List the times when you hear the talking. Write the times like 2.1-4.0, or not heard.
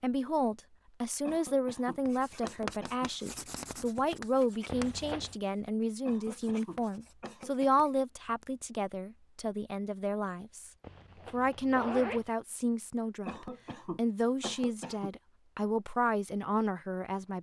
0.0-10.7, 11.3-17.3.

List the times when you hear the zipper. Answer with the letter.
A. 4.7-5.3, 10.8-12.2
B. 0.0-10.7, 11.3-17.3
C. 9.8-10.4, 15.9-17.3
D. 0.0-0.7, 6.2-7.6
A.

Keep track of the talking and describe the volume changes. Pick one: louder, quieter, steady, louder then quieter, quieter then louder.
steady.